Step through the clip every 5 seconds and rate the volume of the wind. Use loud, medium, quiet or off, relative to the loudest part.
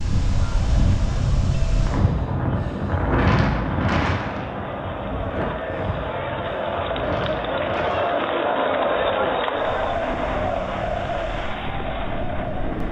loud, medium, medium.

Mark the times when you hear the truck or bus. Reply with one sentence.
The truck or bus can't be heard in this clip.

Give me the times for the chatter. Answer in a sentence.
The chatter can be heard from 0.2 to 12.8 s.